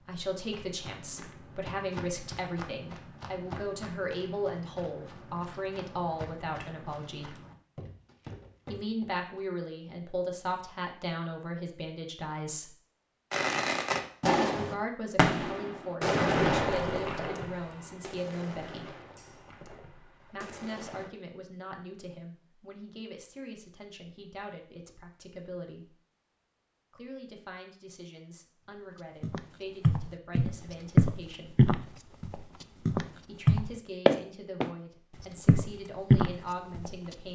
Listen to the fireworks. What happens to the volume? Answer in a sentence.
The loudness of the fireworks goes down.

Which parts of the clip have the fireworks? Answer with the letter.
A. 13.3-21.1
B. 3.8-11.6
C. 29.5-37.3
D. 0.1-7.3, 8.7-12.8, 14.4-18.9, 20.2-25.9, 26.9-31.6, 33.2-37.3
A.